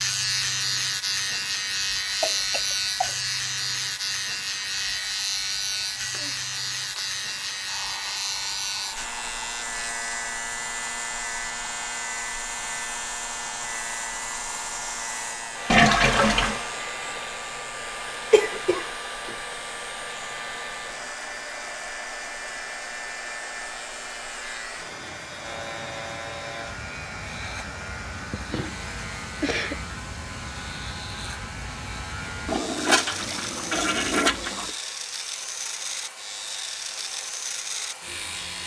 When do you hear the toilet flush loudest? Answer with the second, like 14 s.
16 s.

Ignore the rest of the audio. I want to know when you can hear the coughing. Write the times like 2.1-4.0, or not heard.
2.2-3.1, 18.3-19.4, 28.1-29.9.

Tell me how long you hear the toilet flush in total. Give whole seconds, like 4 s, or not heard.
3 s.